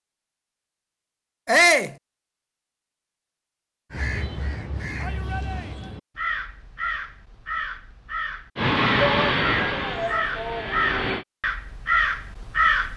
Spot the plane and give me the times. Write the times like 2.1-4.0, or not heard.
8.6-11.2.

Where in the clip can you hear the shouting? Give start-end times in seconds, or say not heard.
1.4-1.9, 5.0-6.0, 8.9-10.8.